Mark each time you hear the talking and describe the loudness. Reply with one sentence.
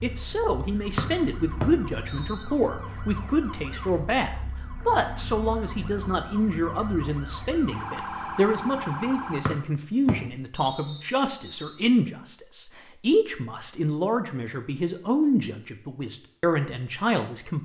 You can hear the talking from 0.0 to 17.6 s, at a steady volume.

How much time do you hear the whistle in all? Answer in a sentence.
The whistle can be heard for 4 seconds in total.